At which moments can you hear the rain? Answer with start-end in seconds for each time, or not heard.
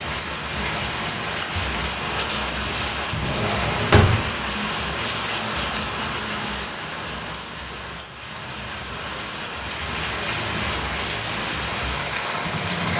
0.0-12.9.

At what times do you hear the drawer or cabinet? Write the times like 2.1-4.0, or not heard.
3.1-4.2.